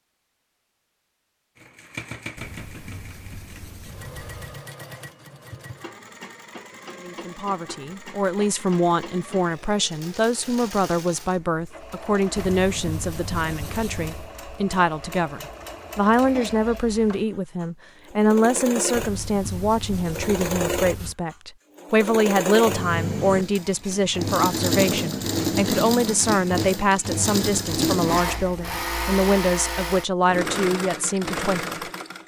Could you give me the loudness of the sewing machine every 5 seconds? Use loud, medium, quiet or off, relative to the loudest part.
quiet, quiet, quiet, medium, loud, loud, loud.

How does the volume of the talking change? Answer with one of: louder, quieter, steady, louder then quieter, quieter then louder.
steady.